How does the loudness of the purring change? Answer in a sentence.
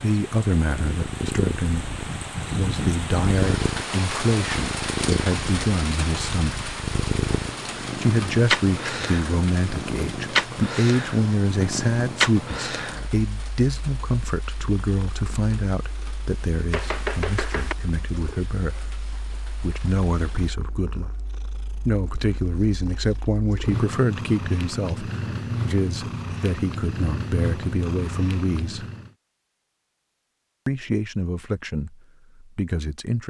The loudness of the purring goes down, then up.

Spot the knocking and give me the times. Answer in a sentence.
You can hear the knocking from 16.7 to 17.8 s.